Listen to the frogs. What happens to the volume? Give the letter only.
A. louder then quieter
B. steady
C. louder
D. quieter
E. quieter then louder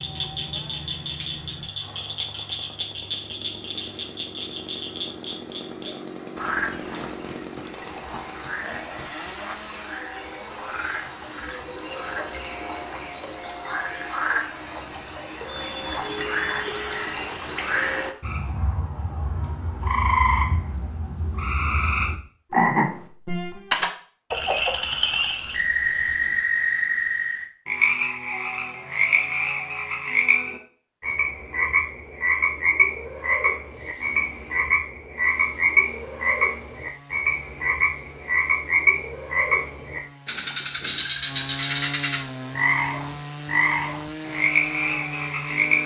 C.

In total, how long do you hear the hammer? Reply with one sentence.
The hammer can be heard for 3 seconds in total.